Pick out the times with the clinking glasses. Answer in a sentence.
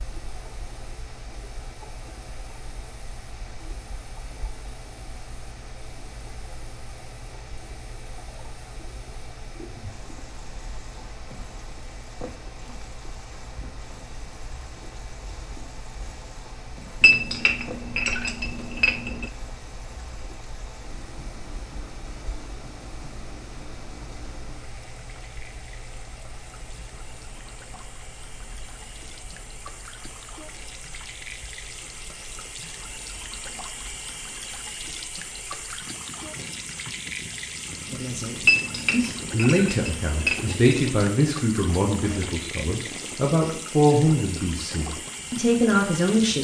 The clinking glasses can be heard from 17.0 to 19.3 s and from 38.5 to 41.0 s.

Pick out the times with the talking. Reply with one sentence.
You can hear the talking from 37.9 to 46.3 s.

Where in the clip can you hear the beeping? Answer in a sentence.
The beeping can't be heard in this clip.